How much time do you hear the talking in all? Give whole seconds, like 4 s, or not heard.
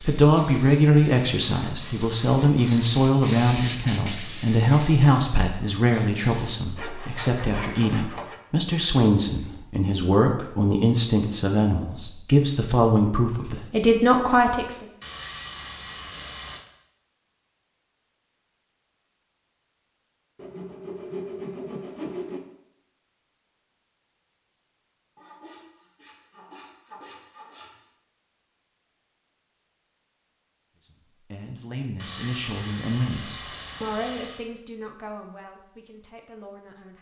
21 s.